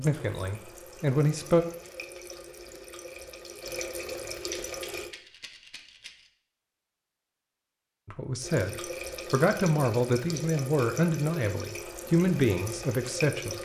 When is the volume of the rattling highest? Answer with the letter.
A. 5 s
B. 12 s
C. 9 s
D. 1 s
A.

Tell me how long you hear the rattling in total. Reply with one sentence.
You can hear the rattling for 2 seconds altogether.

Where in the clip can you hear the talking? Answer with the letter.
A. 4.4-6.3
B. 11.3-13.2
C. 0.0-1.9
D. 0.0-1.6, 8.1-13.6
D.